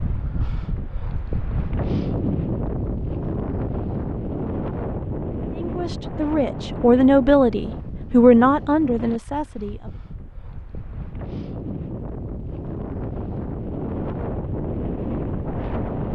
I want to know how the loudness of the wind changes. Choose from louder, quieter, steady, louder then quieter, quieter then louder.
quieter then louder.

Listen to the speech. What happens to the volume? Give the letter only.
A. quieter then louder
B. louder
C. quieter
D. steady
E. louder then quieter
E.